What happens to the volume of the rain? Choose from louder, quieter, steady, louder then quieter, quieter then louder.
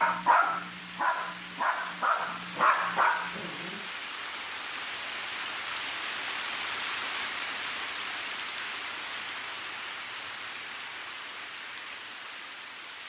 louder then quieter.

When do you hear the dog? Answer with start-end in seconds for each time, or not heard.
0.0-3.9.